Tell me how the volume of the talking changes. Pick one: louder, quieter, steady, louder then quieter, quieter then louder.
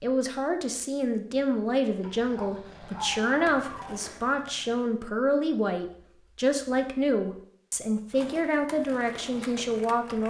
steady.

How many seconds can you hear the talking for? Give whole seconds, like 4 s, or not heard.
10 s.